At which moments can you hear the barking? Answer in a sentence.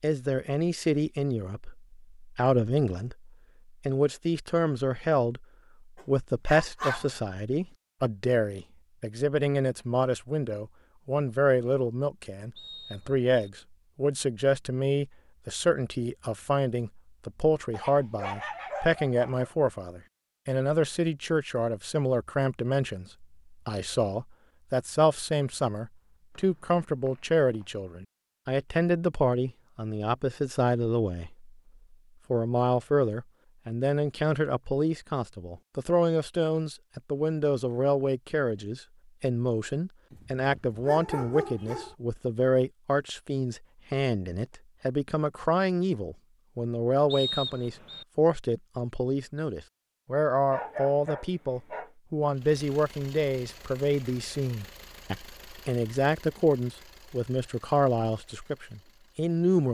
The barking can be heard from 6.0 to 7.2 s, from 17.7 to 19.5 s, from 40.1 to 42.0 s and from 50.5 to 51.9 s.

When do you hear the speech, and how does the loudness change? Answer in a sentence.
The speech can be heard from 0.0 to 5.5 s, getting quieter then louder; from 6.0 to 31.5 s, at a steady volume; and from 32.3 to 59.7 s, at a steady volume.